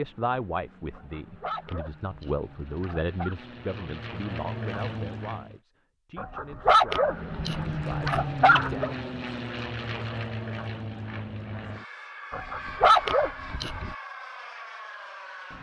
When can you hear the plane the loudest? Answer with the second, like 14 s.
8 s.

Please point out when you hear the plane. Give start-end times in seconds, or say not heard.
0.0-5.6, 6.8-15.5.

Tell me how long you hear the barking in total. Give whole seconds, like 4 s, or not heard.
7 s.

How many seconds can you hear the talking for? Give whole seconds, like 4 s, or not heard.
9 s.